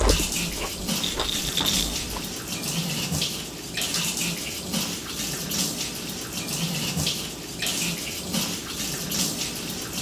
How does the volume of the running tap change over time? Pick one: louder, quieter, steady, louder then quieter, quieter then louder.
steady.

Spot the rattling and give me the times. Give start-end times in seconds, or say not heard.
1.0-2.0.